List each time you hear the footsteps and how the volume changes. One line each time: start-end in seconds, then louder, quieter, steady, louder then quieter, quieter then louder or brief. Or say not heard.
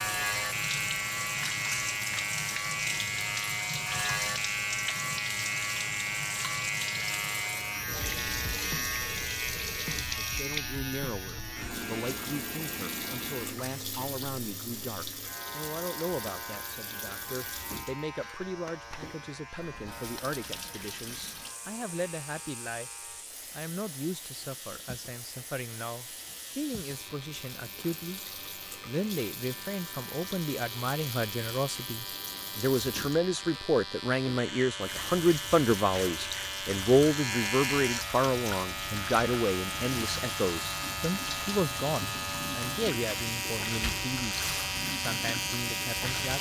not heard.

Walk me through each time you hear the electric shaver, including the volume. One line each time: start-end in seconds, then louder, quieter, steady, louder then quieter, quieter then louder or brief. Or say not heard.
0.0-46.3 quieter then louder.